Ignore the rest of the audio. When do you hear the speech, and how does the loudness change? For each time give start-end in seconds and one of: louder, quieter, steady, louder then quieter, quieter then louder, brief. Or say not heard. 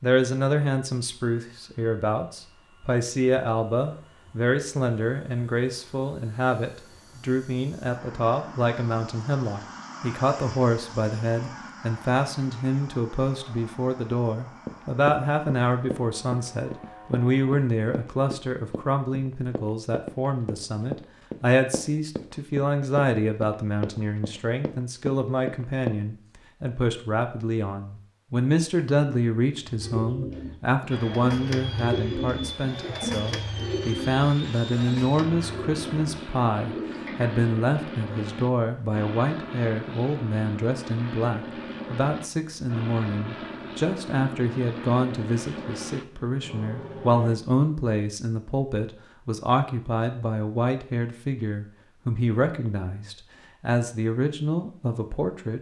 0.0-55.5 steady.